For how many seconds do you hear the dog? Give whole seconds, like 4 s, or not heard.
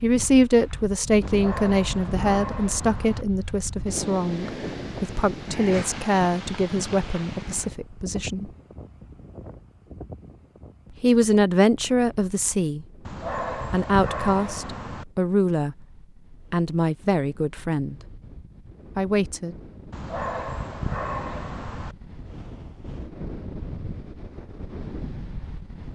6 s.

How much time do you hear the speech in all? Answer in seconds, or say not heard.
15 s.